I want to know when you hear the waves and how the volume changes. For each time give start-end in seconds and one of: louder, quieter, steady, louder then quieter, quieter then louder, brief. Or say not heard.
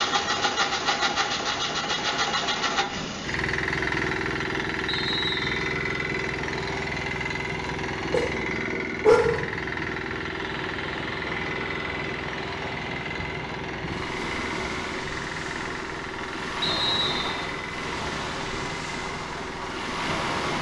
0.0-20.5 louder.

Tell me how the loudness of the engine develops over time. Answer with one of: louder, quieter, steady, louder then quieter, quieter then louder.
quieter.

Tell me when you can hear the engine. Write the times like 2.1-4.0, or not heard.
0.0-20.5.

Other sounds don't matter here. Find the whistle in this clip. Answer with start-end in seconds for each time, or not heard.
4.8-5.7, 16.6-17.4.